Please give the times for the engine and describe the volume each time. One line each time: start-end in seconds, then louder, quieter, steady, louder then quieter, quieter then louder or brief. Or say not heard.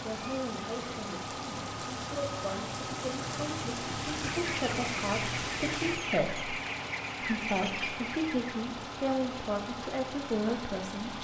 0.0-11.1 steady.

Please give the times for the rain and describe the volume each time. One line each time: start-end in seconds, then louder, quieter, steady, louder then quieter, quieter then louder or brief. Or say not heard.
0.0-6.1 louder.